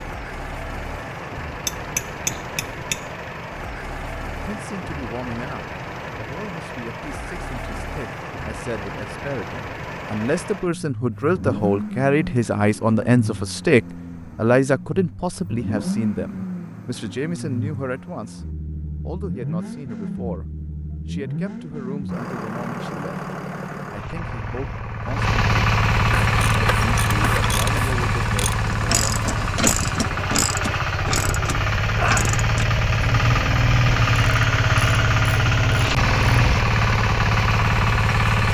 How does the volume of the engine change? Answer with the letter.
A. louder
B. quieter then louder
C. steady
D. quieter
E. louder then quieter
A.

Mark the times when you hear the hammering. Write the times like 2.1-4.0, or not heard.
1.6-3.1.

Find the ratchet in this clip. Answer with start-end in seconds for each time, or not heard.
26.1-36.6.